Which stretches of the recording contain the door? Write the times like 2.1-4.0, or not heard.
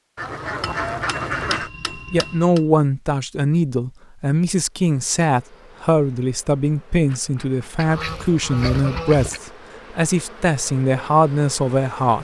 not heard.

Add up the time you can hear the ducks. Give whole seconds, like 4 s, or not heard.
3 s.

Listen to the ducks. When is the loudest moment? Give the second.
1 s.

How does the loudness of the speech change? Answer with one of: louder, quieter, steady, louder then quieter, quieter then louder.
steady.